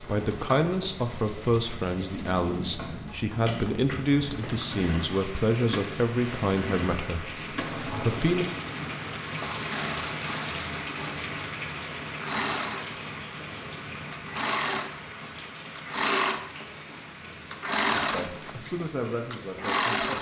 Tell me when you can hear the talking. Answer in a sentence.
The talking can be heard from 0.0 to 8.4 s and from 17.9 to 20.1 s.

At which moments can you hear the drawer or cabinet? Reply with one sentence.
The drawer or cabinet can't be heard in this clip.